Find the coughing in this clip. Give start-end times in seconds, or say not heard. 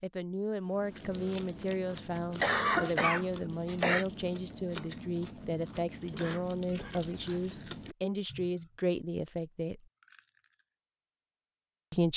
2.4-4.0, 6.2-7.4.